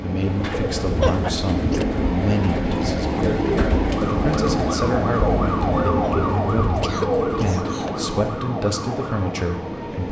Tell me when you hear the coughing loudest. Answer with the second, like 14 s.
1 s.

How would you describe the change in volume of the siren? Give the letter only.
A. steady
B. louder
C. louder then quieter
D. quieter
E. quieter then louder
C.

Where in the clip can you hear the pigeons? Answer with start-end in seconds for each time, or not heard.
0.2-8.2.